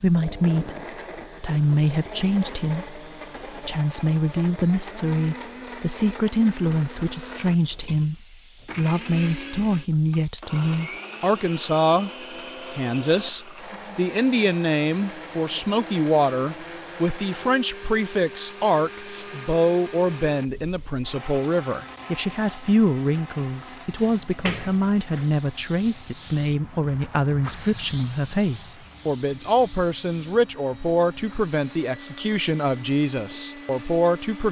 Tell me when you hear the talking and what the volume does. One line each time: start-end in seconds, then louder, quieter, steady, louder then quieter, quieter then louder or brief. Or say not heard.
0.0-0.8 brief
1.4-12.1 steady
12.7-34.4 steady.